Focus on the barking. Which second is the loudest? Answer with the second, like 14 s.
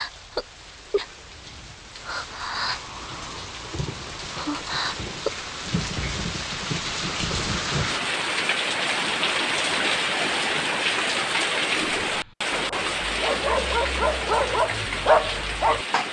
15 s.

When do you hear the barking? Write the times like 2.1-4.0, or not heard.
12.1-16.0.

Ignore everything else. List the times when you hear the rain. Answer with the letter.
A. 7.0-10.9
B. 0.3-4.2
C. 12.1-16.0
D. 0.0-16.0
D.